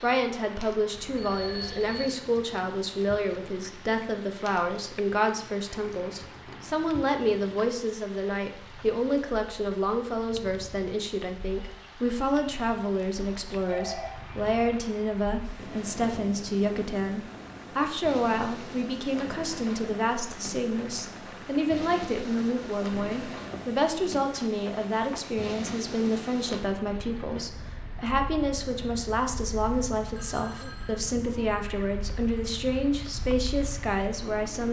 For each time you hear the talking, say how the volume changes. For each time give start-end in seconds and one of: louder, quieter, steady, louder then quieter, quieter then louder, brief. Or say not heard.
0.0-34.6 steady.